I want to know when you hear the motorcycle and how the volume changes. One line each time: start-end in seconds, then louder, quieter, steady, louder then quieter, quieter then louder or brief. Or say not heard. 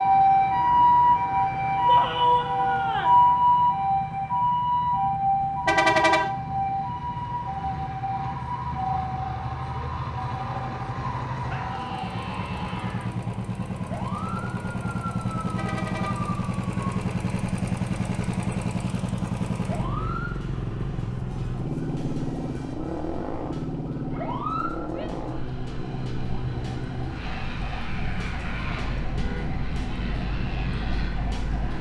0.0-31.7 louder then quieter.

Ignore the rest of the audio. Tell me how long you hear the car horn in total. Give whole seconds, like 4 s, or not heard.
2 s.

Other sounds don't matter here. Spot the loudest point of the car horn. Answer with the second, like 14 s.
6 s.